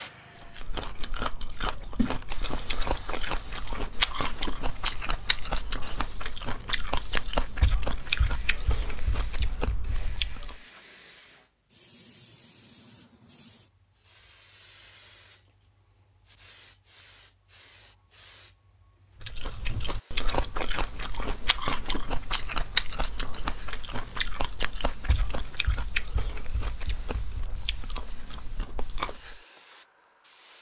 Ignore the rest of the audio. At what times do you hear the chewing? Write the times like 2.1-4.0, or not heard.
0.4-10.6, 19.2-29.4.